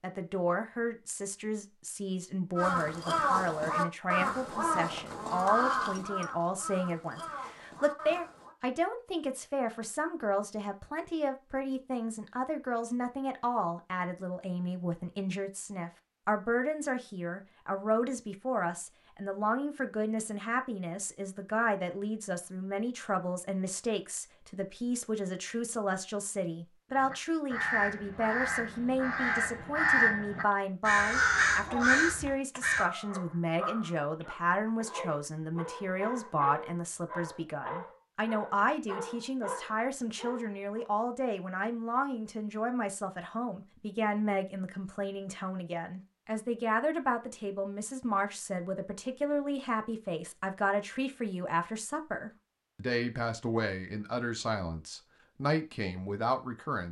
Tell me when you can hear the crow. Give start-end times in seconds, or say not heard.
2.5-8.6, 26.9-32.9.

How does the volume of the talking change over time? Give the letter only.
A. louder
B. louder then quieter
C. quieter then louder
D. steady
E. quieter
D.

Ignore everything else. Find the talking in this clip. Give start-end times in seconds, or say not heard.
0.0-56.8.